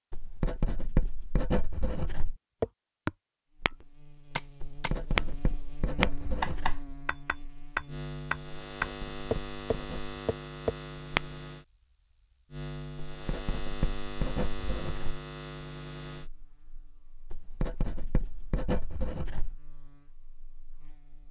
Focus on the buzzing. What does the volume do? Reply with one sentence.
The loudness of the buzzing goes up, then down.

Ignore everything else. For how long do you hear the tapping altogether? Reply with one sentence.
The tapping can be heard for 9 seconds in total.